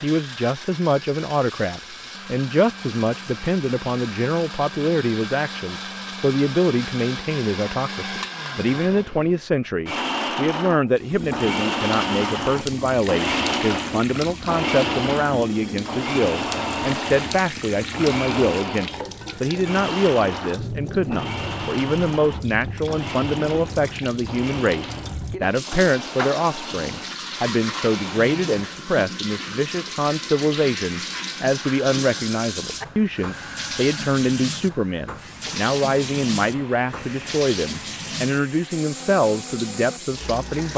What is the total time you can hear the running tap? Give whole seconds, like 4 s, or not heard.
30 s.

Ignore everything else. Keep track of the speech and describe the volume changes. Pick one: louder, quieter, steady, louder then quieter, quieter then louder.
steady.